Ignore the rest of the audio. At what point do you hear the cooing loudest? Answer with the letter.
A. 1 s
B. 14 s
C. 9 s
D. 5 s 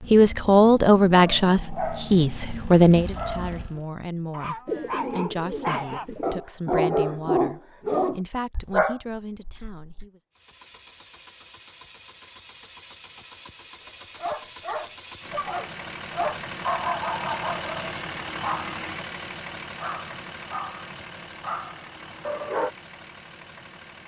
D.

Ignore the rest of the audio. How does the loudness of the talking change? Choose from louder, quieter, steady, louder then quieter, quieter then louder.
quieter.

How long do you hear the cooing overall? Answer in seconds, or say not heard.
2 s.